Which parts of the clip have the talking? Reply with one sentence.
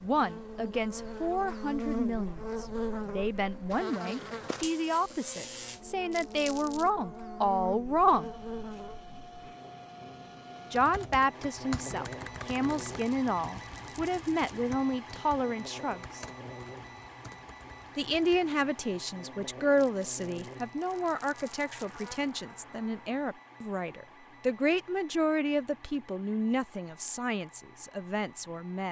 The talking can be heard from 0.0 to 8.3 s, from 10.7 to 16.2 s and from 17.9 to 28.8 s.